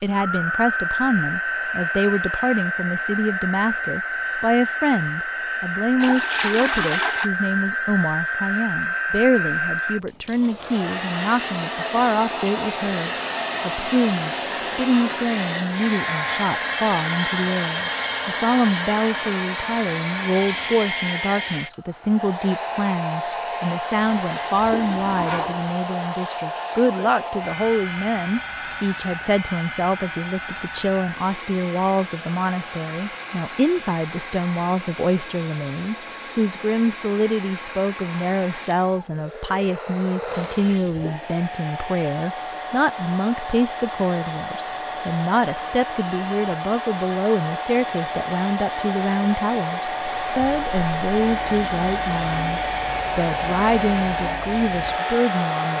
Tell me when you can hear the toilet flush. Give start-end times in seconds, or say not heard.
6.0-7.3, 23.9-25.7, 40.2-41.3.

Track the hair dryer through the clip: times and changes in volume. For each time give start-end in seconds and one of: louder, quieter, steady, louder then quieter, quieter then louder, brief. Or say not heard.
0.0-55.7 quieter then louder.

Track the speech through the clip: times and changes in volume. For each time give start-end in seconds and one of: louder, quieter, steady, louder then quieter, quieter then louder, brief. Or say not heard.
0.0-55.7 steady.